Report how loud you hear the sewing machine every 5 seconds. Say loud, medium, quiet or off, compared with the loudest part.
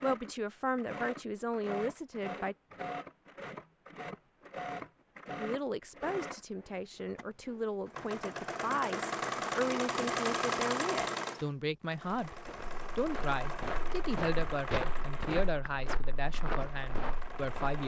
medium, loud, loud, medium.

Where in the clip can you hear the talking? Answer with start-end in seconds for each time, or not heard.
0.0-2.5, 5.3-12.3, 12.9-17.8.